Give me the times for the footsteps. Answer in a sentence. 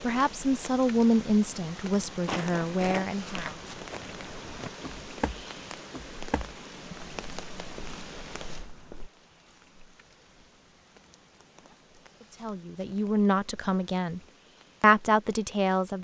You can hear the footsteps from 2.1 to 9.1 s.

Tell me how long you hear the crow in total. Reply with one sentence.
You can't hear the crow here.